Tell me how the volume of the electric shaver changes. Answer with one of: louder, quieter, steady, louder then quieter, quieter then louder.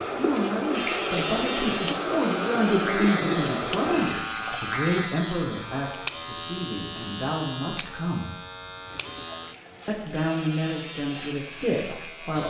quieter.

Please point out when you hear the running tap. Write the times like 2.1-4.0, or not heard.
0.0-5.1, 8.8-12.4.